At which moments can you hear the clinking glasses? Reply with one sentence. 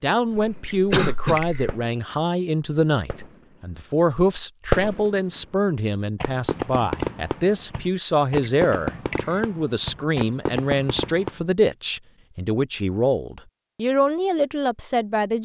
You can hear the clinking glasses from 0.7 to 1.7 s and from 8.4 to 9.4 s.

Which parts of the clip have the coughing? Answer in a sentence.
You can hear the coughing from 0.3 to 1.8 s.